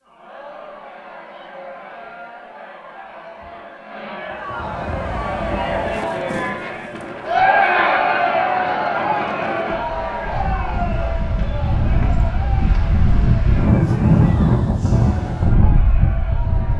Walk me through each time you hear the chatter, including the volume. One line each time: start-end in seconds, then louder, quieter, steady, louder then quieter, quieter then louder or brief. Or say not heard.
0.0-16.7 louder then quieter.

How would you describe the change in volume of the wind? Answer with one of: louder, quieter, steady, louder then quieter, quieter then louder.
louder.